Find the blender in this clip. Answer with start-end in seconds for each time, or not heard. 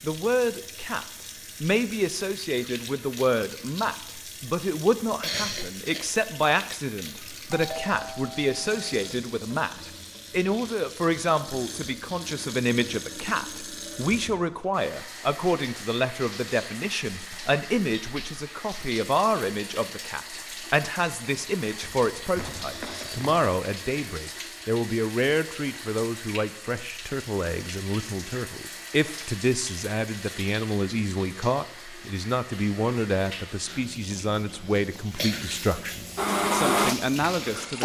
36.1-37.8.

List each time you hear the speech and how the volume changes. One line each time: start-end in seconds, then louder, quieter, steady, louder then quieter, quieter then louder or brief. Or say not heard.
0.0-37.8 steady.